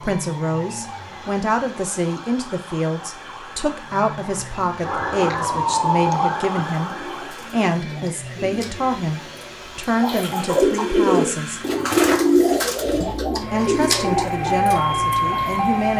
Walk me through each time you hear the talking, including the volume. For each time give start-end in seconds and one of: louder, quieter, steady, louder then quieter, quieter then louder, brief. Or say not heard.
0.0-11.6 steady
13.0-15.9 brief.